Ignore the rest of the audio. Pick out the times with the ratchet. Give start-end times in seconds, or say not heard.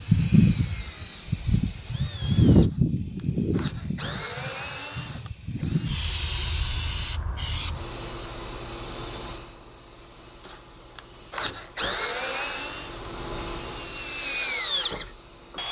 not heard.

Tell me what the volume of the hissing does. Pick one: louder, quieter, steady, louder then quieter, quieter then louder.
quieter then louder.